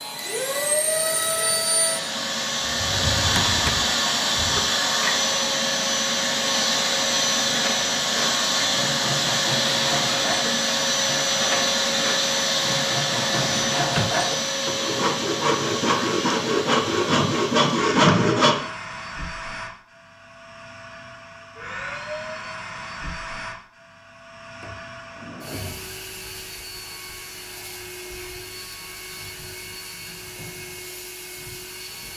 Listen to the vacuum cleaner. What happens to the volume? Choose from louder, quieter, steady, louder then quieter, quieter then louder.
quieter.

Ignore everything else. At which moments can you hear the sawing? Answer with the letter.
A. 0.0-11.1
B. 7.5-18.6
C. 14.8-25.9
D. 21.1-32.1
B.